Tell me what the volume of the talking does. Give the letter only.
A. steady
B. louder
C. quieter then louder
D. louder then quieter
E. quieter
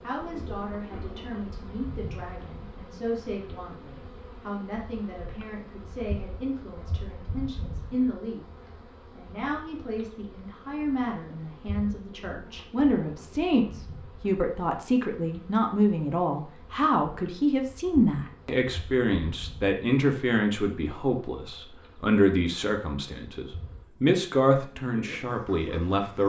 B.